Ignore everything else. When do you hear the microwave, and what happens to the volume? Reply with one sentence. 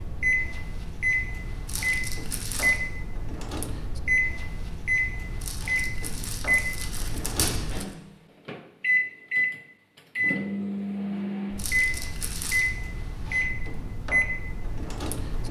You can hear the microwave from 0.0 to 15.4 s, at a steady volume.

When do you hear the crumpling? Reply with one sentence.
The crumpling can be heard from 1.6 to 2.8 s, from 5.4 to 8.0 s and from 11.6 to 12.7 s.